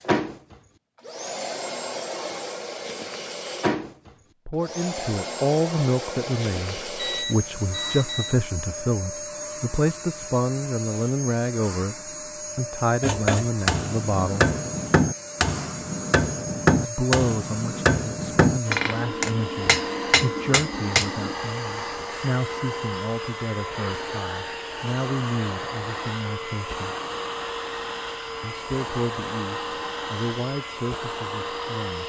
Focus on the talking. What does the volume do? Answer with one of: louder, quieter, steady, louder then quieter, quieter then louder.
quieter.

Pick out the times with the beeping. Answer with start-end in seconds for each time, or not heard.
7.0-8.3.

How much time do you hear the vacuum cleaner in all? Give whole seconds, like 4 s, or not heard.
32 s.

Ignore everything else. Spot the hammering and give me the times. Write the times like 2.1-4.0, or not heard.
13.0-21.4.